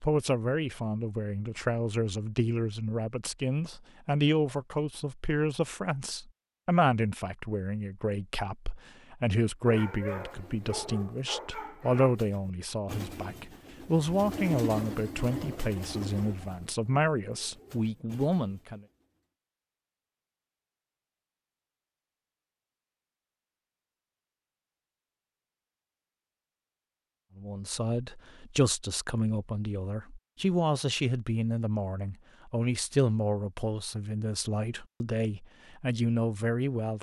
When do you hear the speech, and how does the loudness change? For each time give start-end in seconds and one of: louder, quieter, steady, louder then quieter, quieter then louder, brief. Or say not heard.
0.0-18.8 steady
27.4-36.9 steady.